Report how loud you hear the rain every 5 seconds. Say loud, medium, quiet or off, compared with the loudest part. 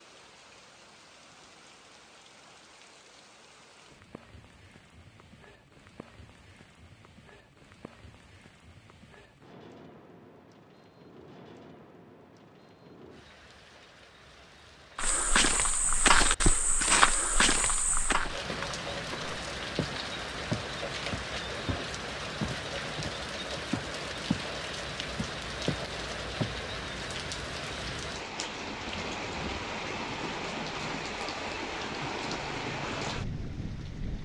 quiet, quiet, quiet, loud, loud, loud, loud.